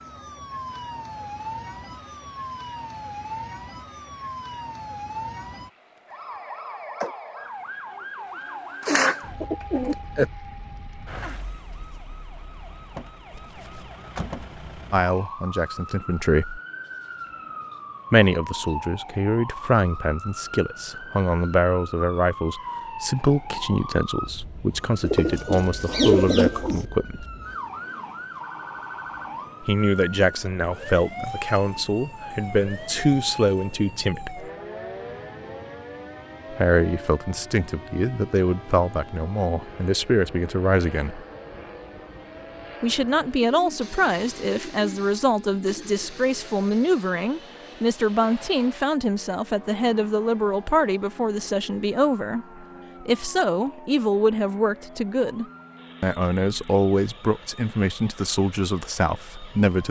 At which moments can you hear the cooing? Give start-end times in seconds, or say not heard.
8.8-10.2, 25.0-26.9, 43.4-46.1.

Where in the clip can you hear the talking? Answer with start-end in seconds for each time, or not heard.
14.9-16.6, 18.1-27.2, 29.6-34.5, 36.5-41.2, 42.8-59.8.